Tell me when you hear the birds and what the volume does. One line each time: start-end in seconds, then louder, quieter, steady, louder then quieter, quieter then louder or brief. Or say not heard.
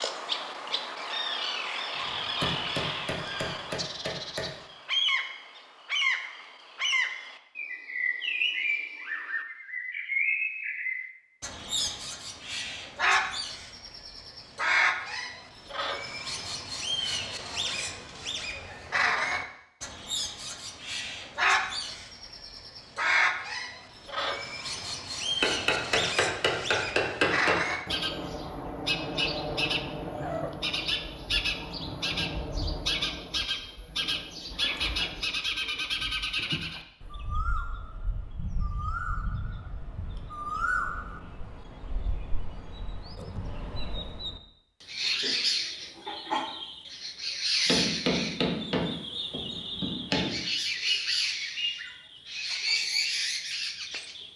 0.0-54.3 steady.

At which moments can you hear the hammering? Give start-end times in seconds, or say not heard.
1.9-4.5, 25.4-27.6, 47.6-50.4.